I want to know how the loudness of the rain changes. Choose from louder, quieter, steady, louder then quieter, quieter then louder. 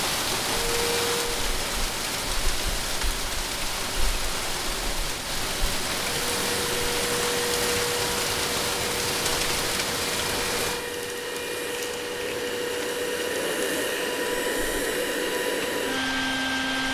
quieter.